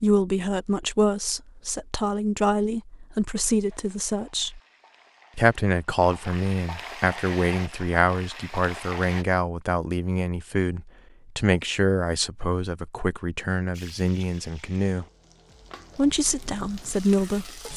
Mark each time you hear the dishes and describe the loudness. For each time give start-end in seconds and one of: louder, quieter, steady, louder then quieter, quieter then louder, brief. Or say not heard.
not heard.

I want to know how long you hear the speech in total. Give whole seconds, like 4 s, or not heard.
16 s.